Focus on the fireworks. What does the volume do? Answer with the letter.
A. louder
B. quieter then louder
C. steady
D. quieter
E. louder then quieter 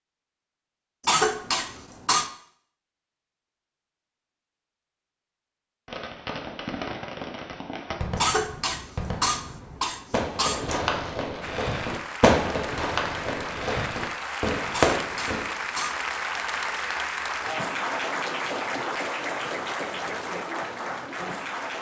A.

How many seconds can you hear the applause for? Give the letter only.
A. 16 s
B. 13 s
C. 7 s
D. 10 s
D.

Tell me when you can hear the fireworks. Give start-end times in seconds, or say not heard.
5.8-15.4.